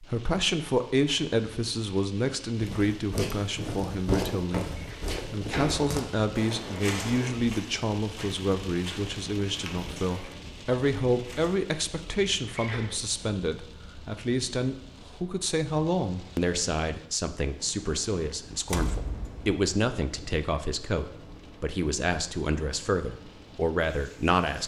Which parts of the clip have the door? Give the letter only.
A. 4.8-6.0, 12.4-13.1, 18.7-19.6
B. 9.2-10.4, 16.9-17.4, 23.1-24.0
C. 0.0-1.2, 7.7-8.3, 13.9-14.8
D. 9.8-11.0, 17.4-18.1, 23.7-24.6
A.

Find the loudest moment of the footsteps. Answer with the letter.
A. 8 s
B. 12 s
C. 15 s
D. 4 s
D.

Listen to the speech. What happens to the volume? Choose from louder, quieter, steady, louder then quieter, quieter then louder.
steady.